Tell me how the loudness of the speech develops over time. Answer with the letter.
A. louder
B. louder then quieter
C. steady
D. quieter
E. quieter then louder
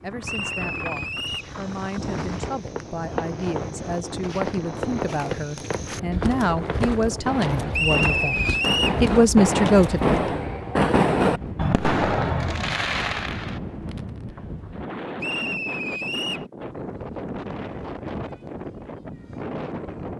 A.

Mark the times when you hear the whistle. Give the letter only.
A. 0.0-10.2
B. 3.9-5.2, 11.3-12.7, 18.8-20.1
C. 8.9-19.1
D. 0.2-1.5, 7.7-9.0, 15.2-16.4
D.